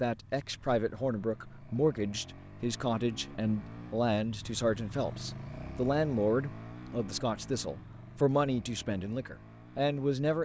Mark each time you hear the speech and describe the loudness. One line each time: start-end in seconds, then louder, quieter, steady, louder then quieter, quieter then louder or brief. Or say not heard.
0.0-10.4 steady.